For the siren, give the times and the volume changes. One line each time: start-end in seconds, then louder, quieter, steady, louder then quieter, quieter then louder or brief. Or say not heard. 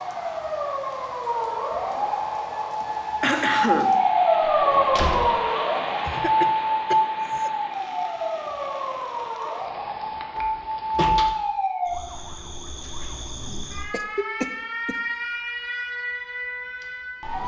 0.0-17.4 louder then quieter.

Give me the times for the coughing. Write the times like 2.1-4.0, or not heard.
2.8-4.0, 6.0-7.5, 13.9-14.9.